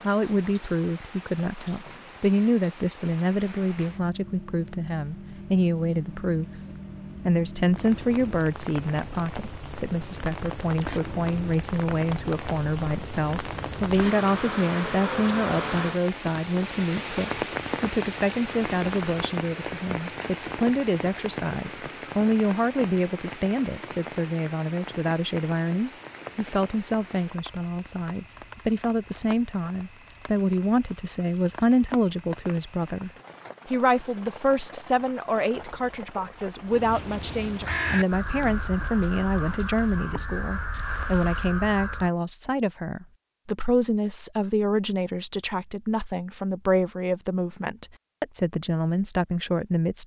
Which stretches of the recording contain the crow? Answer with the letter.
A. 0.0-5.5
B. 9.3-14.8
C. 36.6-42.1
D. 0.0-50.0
C.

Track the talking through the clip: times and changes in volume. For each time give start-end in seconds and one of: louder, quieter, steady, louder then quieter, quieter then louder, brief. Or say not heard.
0.0-50.0 steady.